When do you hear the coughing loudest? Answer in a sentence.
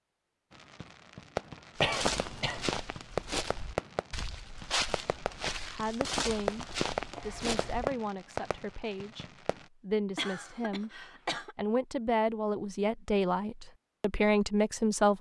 The volume of the coughing peaks at 2 seconds.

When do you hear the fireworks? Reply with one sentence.
The fireworks can be heard from 0.5 to 9.7 s.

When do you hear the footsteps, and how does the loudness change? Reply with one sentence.
The footsteps can be heard from 1.8 to 7.8 s, at a steady volume.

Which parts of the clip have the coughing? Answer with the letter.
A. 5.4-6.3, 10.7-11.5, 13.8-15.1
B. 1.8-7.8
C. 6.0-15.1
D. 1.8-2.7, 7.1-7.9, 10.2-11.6
D.